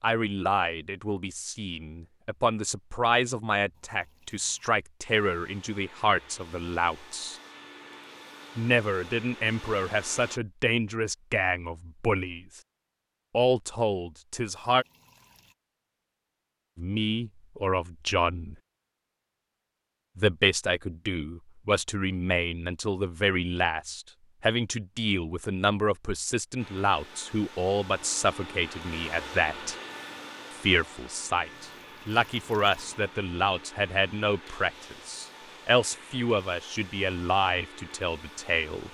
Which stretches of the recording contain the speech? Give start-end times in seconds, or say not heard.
0.0-7.3, 8.6-12.6, 13.3-14.8, 16.8-18.6, 20.1-29.8, 30.6-38.8.